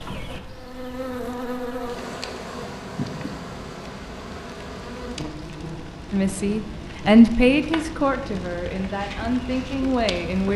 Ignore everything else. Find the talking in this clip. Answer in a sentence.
The talking can be heard from 6.1 to 10.5 s.